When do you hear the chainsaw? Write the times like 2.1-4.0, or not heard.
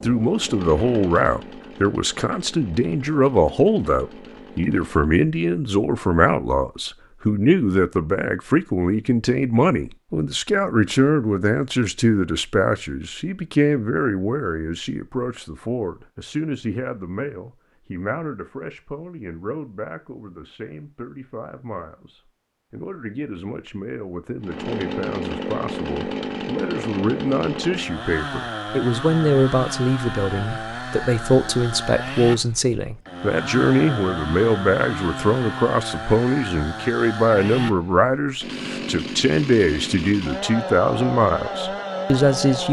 0.0-5.2, 24.4-42.6.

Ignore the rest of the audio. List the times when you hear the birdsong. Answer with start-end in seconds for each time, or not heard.
not heard.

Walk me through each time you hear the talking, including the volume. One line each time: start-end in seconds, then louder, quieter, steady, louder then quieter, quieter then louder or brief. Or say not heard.
0.0-42.6 quieter then louder.